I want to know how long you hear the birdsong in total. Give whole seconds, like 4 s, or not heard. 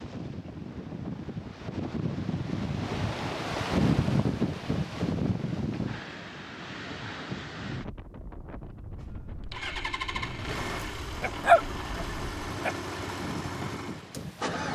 not heard.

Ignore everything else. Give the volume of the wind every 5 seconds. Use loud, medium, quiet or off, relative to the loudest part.
loud, medium, medium.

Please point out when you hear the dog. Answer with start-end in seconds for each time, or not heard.
10.8-12.8.